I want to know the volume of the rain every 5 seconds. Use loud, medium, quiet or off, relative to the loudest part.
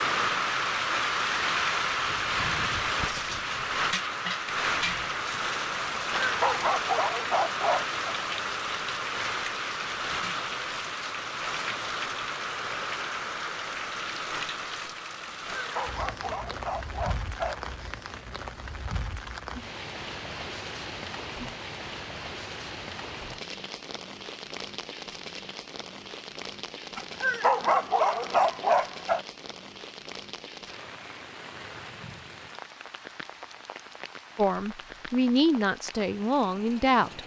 loud, loud, medium, medium, medium, quiet, quiet, quiet.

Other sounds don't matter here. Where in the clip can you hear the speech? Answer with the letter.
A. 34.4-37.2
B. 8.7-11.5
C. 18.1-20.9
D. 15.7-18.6
A.